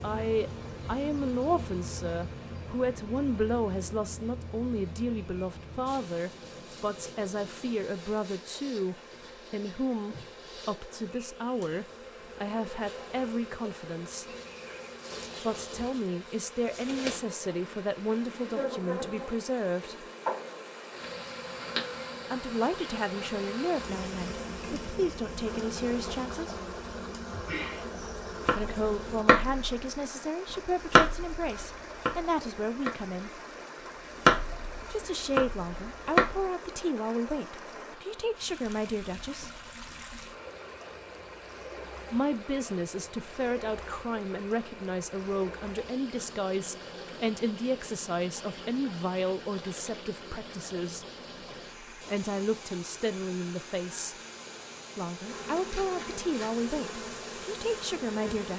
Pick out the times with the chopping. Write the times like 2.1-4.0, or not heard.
28.4-29.8, 30.9-33.1, 34.2-36.4.